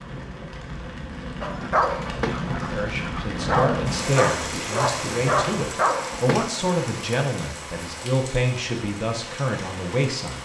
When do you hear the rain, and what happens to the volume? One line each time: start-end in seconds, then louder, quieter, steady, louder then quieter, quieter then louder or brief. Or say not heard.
0.0-10.4 louder then quieter.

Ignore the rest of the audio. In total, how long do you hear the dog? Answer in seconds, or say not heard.
5 s.